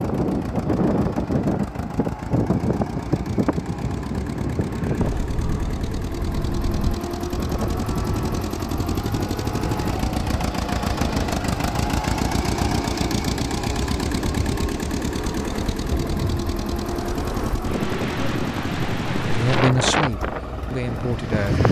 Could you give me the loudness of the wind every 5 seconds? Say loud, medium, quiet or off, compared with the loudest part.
loud, medium, medium, loud, loud.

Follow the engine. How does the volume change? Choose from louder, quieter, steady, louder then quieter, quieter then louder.
louder then quieter.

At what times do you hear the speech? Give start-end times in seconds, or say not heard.
19.2-21.6.